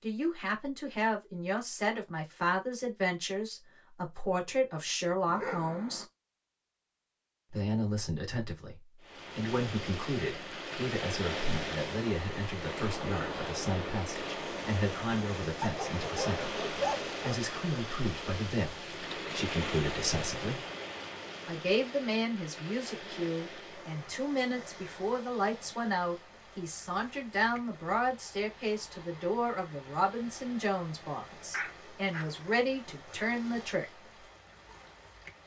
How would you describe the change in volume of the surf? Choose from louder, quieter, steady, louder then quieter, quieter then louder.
quieter.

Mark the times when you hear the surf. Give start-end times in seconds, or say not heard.
9.0-35.4.